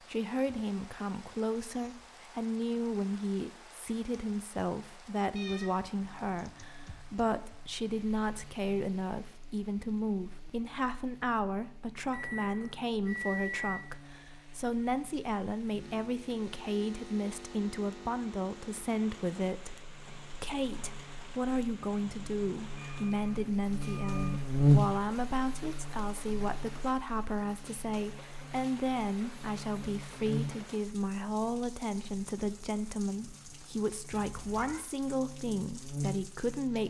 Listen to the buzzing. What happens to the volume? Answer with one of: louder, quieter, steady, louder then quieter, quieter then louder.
louder then quieter.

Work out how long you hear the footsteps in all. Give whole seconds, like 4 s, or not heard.
not heard.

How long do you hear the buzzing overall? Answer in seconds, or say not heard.
31 s.